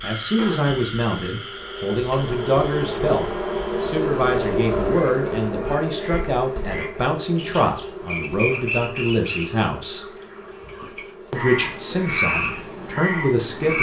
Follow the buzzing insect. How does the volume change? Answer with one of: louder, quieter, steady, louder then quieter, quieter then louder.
louder then quieter.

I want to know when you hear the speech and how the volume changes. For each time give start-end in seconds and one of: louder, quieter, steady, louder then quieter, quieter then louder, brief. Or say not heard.
0.0-10.1 steady
11.3-13.7 brief.